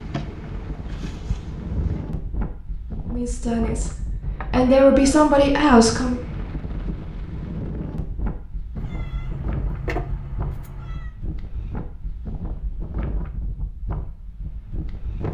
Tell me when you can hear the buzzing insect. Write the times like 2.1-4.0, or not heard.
0.0-2.1.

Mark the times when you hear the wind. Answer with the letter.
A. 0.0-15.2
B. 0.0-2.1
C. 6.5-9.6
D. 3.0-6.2
A.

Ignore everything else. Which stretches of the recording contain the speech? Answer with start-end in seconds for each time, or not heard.
3.0-6.2.